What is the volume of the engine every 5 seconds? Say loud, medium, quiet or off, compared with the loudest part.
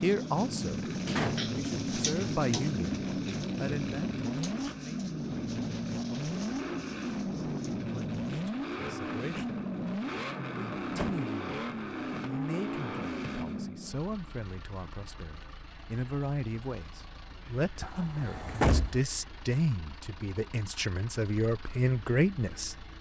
loud, loud, loud, quiet, quiet.